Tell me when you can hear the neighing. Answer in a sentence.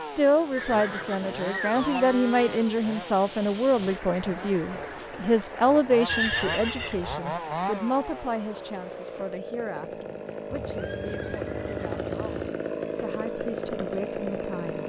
The neighing can be heard from 0.6 to 2.0 s, from 6.0 to 7.2 s and from 10.5 to 12.3 s.